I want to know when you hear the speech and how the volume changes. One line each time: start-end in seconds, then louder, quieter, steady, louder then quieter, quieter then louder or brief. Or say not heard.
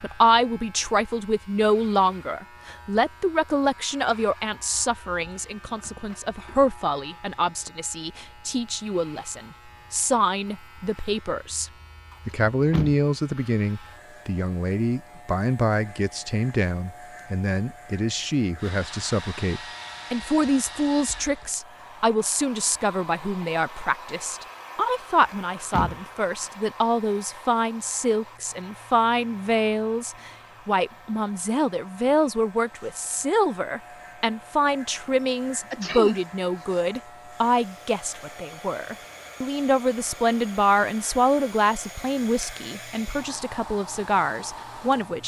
0.0-45.2 steady.